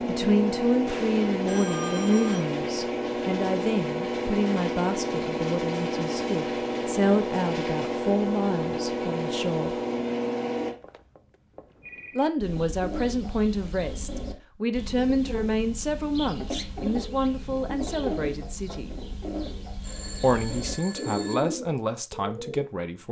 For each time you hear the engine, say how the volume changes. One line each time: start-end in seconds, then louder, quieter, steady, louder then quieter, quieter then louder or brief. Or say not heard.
0.0-10.8 steady.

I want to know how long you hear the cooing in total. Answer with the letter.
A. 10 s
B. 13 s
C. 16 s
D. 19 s
A.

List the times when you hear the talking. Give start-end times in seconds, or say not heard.
0.1-9.8, 12.2-18.9, 20.2-23.0.